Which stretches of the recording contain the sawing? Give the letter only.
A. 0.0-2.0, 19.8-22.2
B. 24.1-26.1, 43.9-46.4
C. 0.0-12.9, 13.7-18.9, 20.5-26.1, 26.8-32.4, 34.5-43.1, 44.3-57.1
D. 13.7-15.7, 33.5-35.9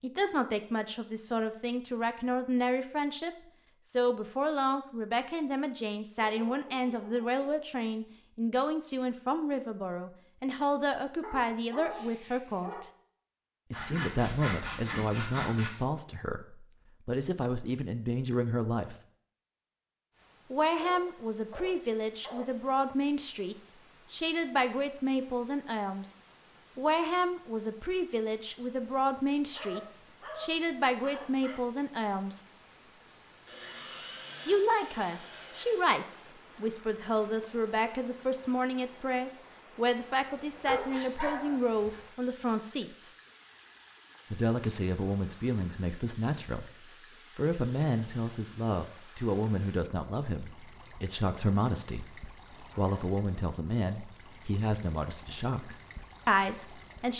D.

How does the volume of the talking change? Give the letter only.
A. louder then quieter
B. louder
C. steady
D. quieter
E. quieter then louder
C.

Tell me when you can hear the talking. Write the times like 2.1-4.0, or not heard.
0.0-12.9, 13.7-18.9, 20.5-26.1, 26.8-32.4, 34.5-43.1, 44.3-57.1.